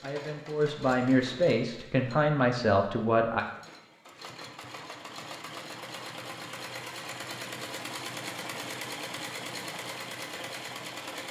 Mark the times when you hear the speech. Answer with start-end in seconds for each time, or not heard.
0.0-3.5.